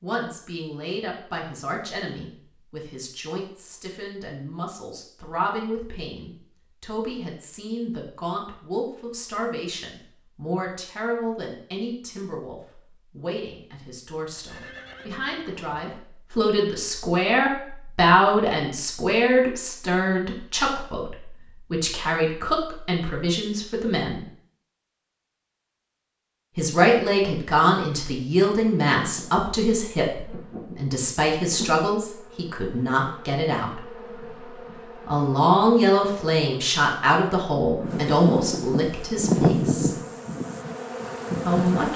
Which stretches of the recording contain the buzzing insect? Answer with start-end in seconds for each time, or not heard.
28.6-41.9.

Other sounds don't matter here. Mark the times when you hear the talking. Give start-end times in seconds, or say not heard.
0.0-24.2, 26.6-33.8, 35.0-39.9, 41.5-41.9.